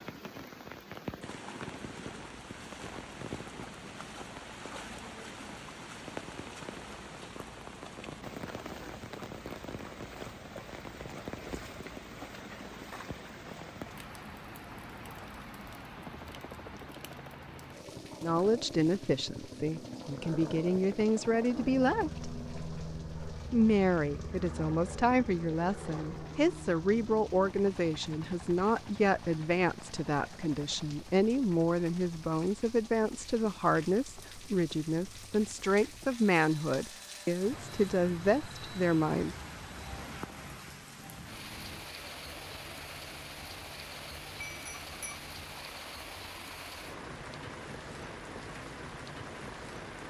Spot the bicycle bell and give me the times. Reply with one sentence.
The bicycle bell can be heard from 44.4 to 45.2 s.